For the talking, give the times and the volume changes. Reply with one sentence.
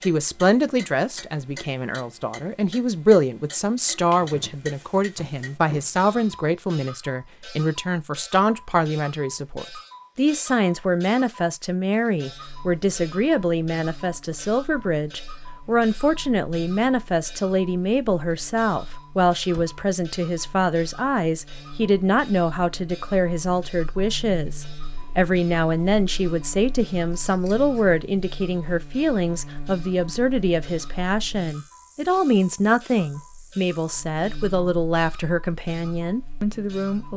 The talking can be heard from 0.0 to 37.1 s, at a steady volume.